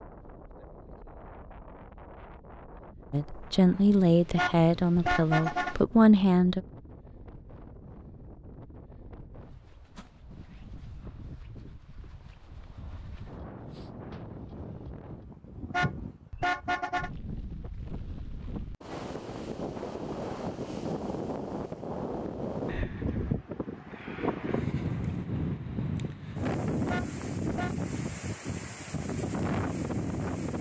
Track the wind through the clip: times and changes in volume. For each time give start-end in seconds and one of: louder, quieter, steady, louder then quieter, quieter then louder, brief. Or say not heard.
0.0-30.5 louder.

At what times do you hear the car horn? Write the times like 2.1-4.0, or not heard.
4.3-5.8, 15.7-17.1, 26.9-27.8.